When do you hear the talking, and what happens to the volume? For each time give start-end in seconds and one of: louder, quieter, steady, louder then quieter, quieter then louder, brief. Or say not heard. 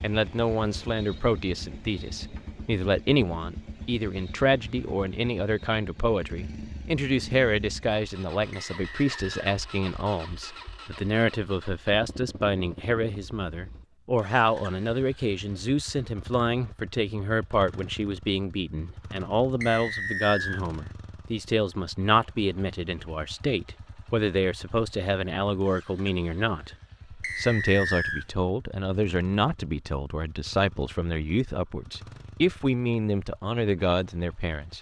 0.0-34.7 steady.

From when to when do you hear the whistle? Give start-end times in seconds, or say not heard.
8.5-9.4, 19.6-20.6, 27.2-28.2.